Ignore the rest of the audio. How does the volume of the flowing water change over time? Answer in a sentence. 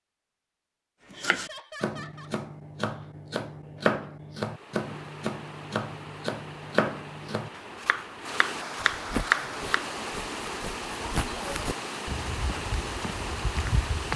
The loudness of the flowing water goes up.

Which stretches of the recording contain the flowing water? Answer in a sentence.
The flowing water can be heard from 4.3 to 14.1 s.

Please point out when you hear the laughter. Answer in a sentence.
You can hear the laughter from 1.1 to 2.3 s and from 11.1 to 11.7 s.